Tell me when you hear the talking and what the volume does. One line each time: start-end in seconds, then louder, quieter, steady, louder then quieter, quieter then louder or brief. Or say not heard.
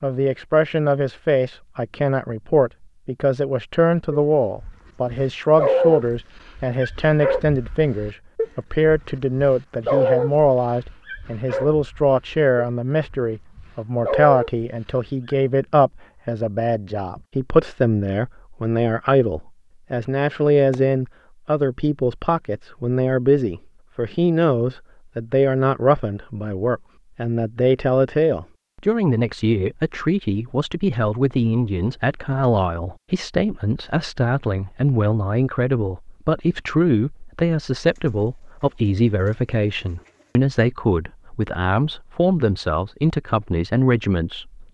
0.0-44.7 steady.